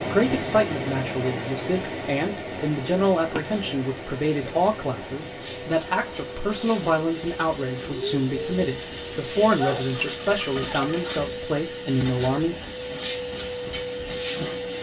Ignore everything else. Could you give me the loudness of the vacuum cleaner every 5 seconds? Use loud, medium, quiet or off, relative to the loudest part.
quiet, loud, loud.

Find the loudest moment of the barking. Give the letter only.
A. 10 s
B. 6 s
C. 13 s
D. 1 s
A.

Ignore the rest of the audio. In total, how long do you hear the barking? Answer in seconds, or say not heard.
2 s.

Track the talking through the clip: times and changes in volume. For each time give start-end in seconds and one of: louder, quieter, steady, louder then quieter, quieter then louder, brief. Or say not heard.
0.0-12.6 steady.